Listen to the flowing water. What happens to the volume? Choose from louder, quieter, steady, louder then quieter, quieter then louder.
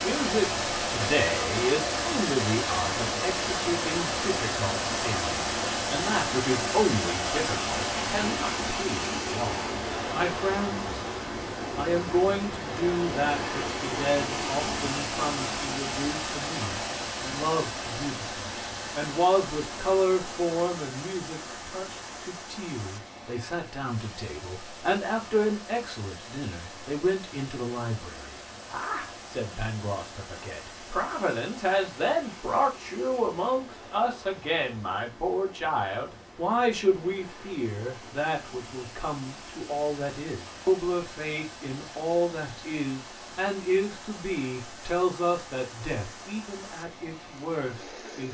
quieter.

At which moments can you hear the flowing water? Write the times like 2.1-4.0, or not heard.
0.0-48.3.